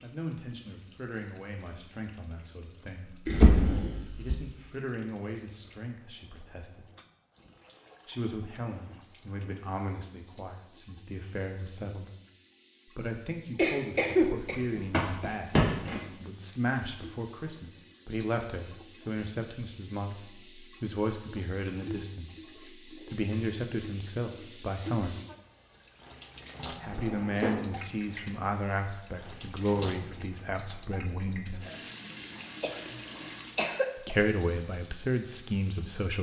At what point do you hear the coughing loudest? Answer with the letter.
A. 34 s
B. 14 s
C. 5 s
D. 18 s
B.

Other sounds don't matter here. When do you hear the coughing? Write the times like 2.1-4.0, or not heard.
13.6-15.3, 32.6-34.1.